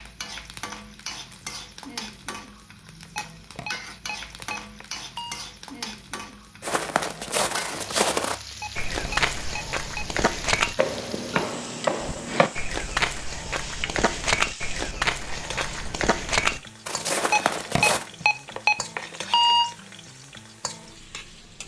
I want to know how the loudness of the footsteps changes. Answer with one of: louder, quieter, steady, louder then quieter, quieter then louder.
steady.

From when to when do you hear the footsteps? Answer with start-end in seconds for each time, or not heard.
6.6-18.1.